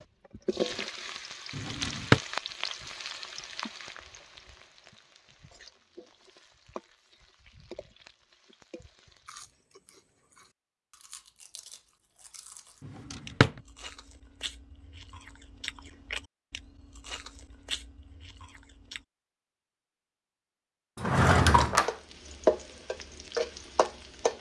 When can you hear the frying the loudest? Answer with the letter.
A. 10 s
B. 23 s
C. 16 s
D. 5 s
B.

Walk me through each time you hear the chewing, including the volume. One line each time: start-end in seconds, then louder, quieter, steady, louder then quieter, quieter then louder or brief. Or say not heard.
9.2-19.1 louder.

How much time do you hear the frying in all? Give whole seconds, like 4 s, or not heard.
12 s.